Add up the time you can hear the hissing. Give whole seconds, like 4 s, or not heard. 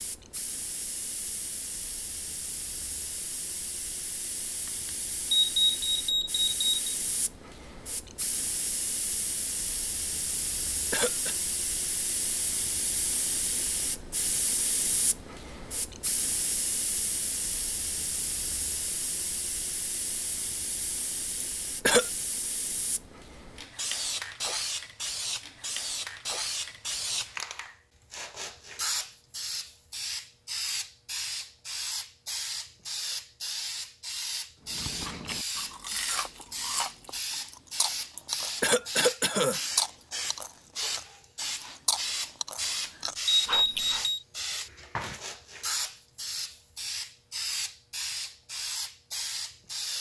50 s.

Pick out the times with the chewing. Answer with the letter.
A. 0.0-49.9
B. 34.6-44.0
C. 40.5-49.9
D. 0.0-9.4
B.